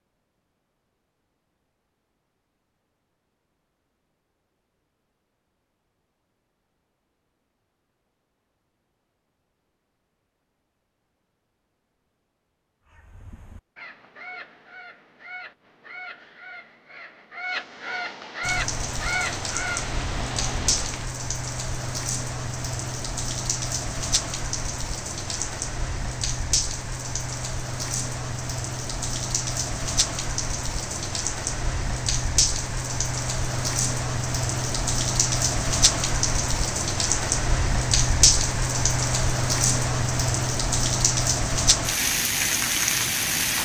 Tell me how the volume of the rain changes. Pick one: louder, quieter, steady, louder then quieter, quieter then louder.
louder.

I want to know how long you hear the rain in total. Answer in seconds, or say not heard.
25 s.